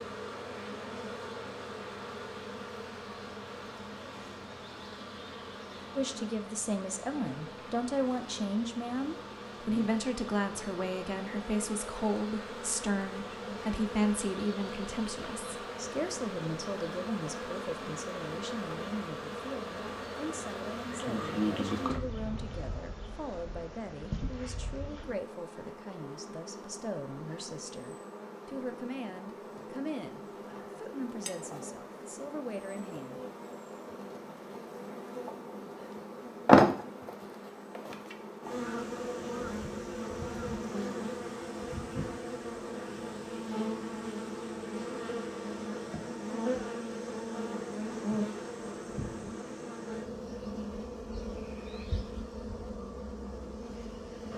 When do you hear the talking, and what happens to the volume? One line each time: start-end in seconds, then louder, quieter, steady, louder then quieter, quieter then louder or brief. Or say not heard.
6.0-33.2 quieter.